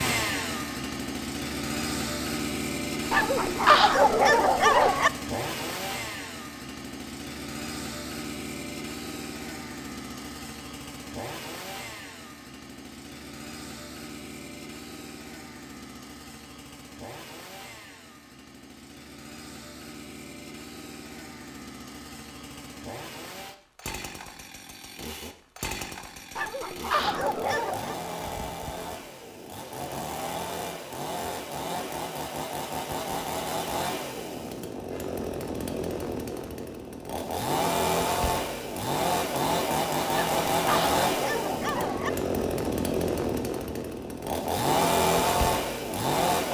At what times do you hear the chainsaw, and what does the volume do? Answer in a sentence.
The chainsaw can be heard from 0.0 to 46.4 s, getting quieter then louder.